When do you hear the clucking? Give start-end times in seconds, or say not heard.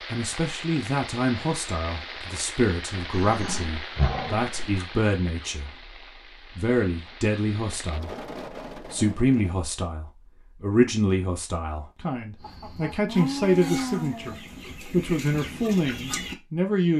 12.4-16.4.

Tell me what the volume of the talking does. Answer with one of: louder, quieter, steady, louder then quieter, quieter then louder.
steady.